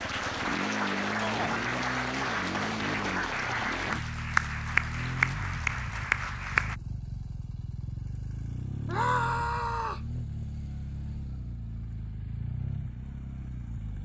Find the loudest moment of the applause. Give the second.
5 s.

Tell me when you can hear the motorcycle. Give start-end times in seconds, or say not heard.
0.0-14.0.